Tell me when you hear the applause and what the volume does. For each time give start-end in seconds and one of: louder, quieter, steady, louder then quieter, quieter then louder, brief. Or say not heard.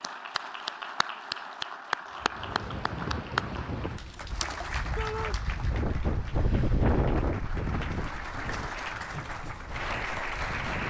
0.0-10.8 quieter then louder.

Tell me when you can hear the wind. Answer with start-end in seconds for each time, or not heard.
2.1-10.8.